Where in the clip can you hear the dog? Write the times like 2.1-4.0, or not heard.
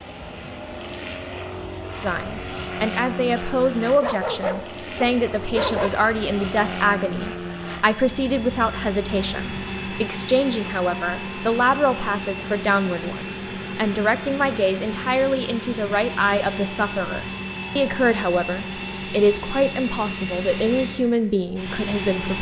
4.0-5.9.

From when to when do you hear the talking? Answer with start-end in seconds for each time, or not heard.
2.0-22.3.